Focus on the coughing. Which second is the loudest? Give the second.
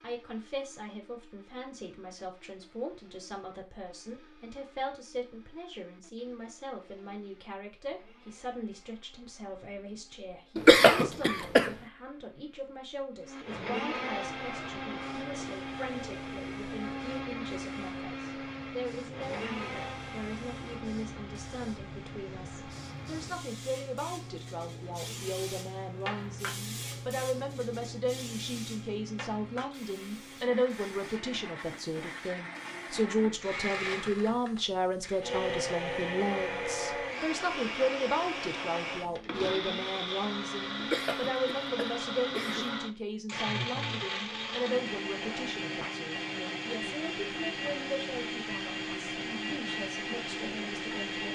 11 s.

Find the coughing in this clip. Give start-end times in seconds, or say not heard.
10.6-11.7, 40.8-42.8.